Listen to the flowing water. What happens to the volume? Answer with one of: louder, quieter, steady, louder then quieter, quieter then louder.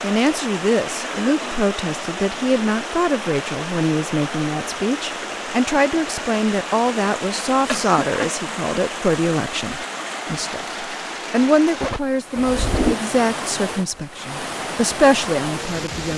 steady.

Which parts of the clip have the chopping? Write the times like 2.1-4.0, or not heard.
not heard.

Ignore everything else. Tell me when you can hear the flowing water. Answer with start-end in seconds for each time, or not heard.
0.0-16.1.